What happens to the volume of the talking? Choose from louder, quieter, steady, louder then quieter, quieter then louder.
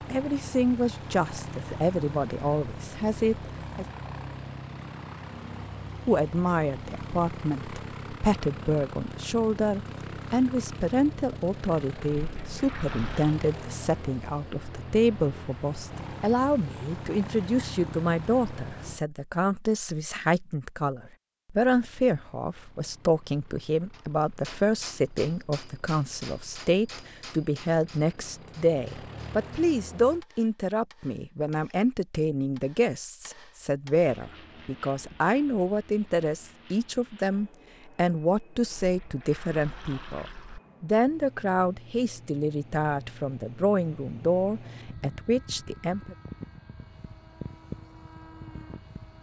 steady.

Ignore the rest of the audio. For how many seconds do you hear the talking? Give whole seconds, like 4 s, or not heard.
44 s.